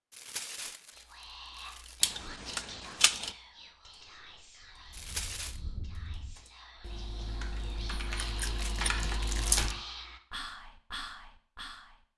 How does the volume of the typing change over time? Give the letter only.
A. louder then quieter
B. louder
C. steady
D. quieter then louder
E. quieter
B.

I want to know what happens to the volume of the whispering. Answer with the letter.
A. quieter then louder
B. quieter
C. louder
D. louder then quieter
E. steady
A.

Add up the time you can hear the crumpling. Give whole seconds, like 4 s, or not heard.
4 s.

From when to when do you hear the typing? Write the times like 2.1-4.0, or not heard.
3.8-9.8.